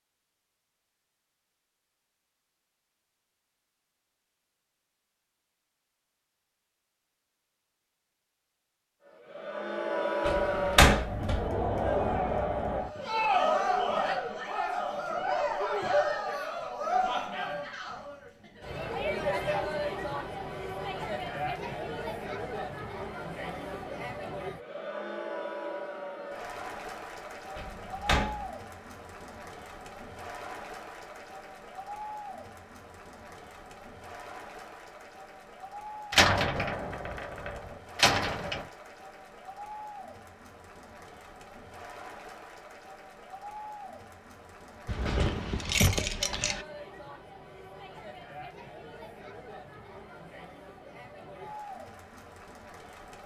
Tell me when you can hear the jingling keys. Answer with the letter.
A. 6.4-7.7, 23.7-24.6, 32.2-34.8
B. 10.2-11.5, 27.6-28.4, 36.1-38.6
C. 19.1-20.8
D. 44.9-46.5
D.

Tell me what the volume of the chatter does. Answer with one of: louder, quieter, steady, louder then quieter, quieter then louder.
quieter.